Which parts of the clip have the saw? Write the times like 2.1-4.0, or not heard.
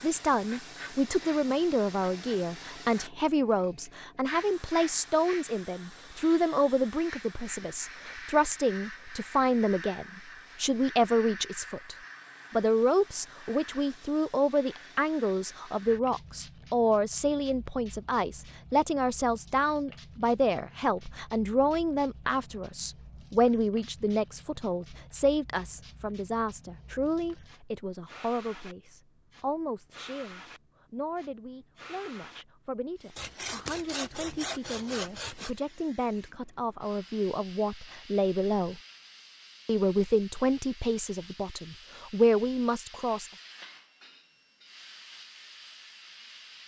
33.1-35.5.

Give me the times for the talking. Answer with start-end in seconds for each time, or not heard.
0.0-38.8, 39.6-43.3.